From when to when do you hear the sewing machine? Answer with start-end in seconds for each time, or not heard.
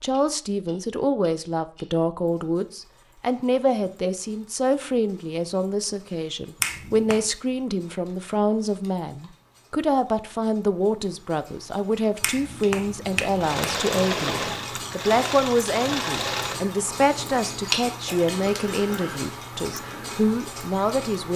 13.2-16.6.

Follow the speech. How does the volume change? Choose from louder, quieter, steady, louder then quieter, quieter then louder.
steady.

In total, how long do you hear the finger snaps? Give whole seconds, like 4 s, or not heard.
2 s.